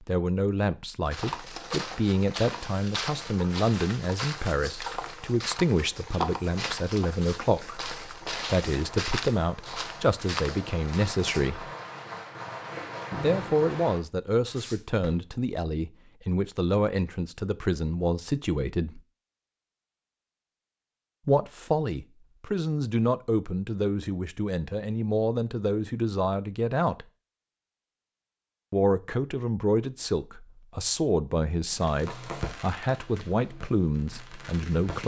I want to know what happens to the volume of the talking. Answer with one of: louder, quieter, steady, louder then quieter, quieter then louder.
steady.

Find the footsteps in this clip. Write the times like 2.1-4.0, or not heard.
1.1-11.5.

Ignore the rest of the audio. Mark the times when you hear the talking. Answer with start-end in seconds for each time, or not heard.
0.0-11.7, 13.2-19.0, 21.2-27.1, 28.7-35.0.